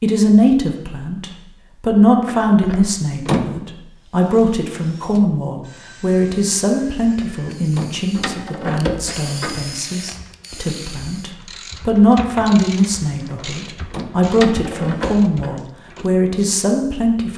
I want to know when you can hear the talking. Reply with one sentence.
The talking can be heard from 0.0 to 17.3 s.